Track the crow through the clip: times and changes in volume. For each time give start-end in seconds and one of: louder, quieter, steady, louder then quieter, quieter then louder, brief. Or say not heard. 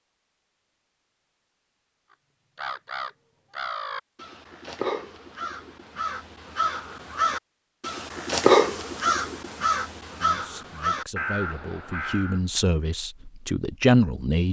2.5-12.4 louder then quieter.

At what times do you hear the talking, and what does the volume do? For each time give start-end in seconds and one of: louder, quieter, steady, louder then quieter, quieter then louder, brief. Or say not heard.
10.2-14.4 louder.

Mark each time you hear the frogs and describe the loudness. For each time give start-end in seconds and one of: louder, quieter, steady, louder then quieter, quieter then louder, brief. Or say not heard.
not heard.